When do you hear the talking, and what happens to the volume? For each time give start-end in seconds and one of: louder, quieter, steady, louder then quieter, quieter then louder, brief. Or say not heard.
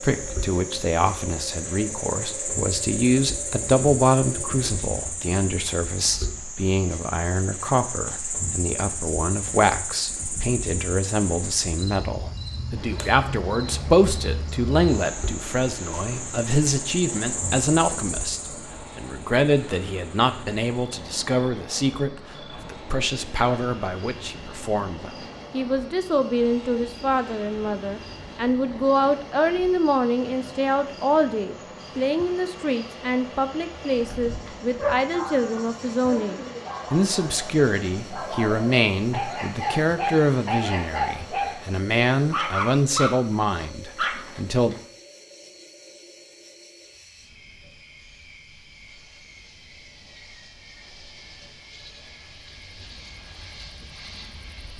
0.0-44.8 steady.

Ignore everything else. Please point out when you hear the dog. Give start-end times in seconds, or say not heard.
34.0-44.8.